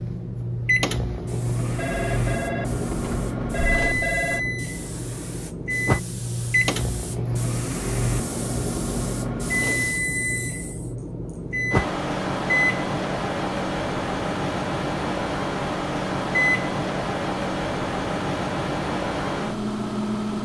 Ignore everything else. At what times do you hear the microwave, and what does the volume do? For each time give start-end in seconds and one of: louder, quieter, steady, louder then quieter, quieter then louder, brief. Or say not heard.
0.0-20.4 steady.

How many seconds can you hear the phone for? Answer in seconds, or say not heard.
3 s.